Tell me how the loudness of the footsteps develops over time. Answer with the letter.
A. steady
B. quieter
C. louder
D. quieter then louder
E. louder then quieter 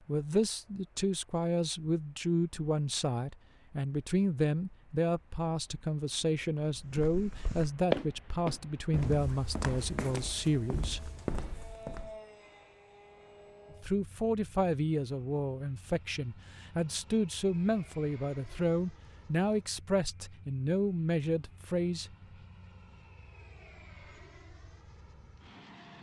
B.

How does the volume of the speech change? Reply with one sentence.
The loudness of the speech stays about the same.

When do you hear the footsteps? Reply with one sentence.
You can hear the footsteps from 6.7 to 12.2 s.